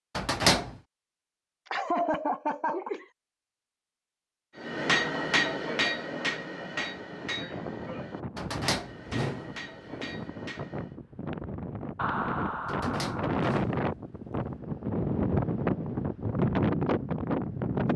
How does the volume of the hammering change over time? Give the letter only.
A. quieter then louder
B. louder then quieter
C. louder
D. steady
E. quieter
E.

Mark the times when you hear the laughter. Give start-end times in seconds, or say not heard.
1.6-3.0, 11.9-13.3.